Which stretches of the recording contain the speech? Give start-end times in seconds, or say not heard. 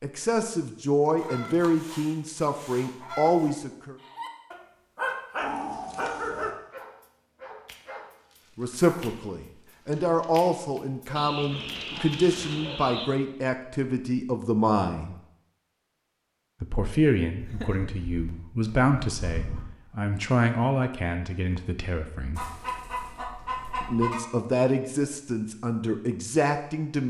0.0-4.0, 8.6-15.2, 16.6-22.5, 23.8-27.0.